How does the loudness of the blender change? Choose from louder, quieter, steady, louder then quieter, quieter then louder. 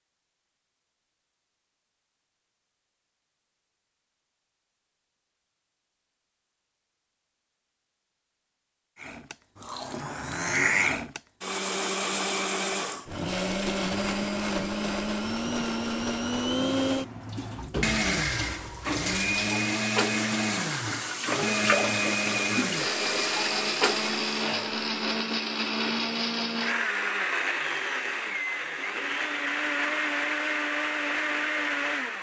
steady.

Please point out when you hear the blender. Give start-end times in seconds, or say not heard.
8.9-32.1.